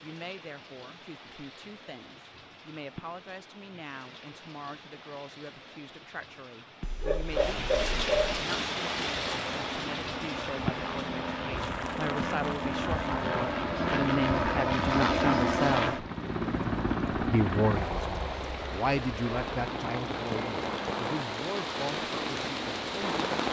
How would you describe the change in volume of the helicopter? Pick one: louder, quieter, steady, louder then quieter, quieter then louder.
louder then quieter.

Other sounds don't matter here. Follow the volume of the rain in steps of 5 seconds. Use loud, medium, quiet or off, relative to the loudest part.
quiet, loud, medium, medium, loud.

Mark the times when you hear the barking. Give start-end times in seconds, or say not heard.
6.8-8.3.